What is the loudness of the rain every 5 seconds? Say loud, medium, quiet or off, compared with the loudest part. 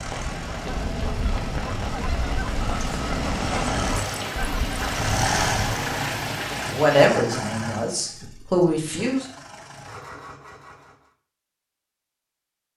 loud, loud, off.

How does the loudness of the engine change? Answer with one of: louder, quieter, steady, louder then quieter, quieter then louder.
louder then quieter.